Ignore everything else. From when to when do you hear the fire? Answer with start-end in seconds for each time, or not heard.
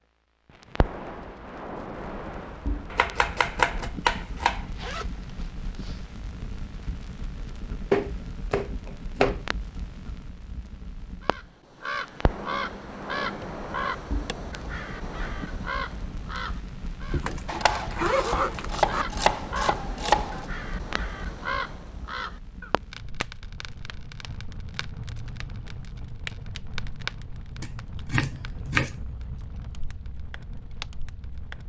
0.5-31.6.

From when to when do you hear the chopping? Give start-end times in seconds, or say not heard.
2.9-4.7, 7.9-9.4, 17.4-20.4, 27.6-29.0.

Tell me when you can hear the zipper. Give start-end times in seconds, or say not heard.
4.5-6.0, 17.1-19.1.